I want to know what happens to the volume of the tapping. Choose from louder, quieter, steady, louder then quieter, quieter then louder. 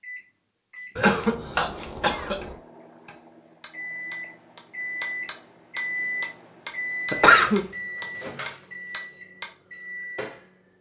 louder.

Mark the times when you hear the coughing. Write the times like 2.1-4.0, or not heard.
0.9-2.5, 7.1-7.7.